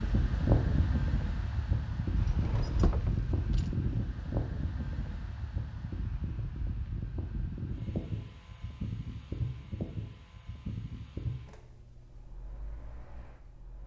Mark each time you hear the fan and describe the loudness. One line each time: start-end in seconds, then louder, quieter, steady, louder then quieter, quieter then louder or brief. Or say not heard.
0.0-13.8 quieter.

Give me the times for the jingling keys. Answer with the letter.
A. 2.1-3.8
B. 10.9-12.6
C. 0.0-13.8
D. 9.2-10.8
A.